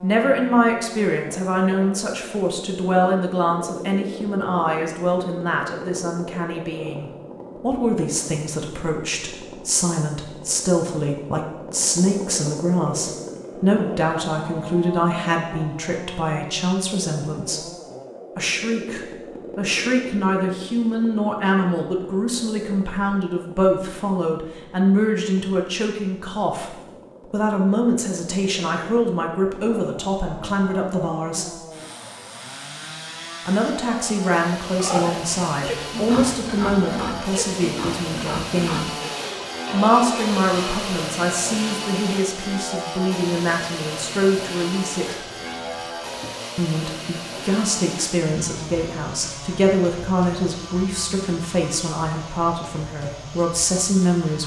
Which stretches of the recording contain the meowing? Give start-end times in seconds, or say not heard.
45.0-46.4.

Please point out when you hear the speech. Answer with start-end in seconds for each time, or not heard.
0.0-17.6, 18.4-31.6, 33.5-38.9, 39.7-45.2, 46.5-54.4.